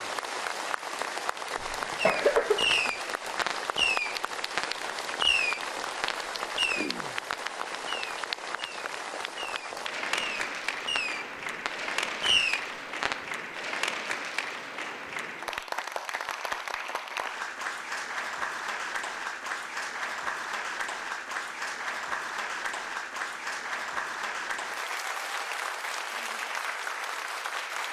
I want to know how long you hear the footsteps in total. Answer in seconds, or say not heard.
not heard.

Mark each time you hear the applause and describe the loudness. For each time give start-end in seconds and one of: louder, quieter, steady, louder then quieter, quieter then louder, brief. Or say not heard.
0.0-27.8 steady.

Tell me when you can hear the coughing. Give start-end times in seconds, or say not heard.
1.6-2.9.